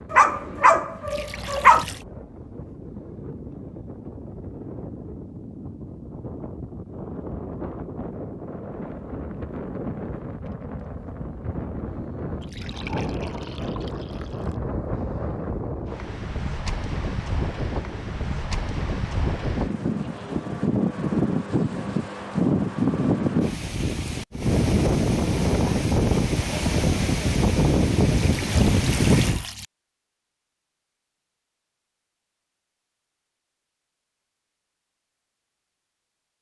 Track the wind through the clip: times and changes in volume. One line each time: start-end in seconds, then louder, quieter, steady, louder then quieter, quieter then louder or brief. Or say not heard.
0.0-29.4 louder.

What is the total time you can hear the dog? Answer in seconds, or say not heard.
2 s.